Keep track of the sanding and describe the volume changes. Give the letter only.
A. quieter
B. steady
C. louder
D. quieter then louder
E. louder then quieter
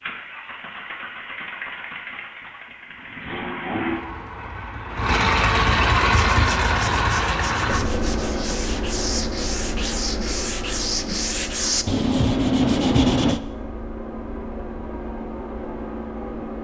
C.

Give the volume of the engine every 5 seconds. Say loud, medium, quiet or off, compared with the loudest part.
medium, loud, medium, medium.